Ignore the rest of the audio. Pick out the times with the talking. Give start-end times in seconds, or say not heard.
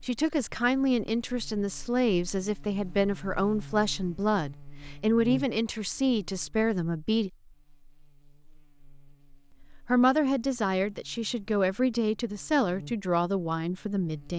0.0-7.3, 9.5-14.3.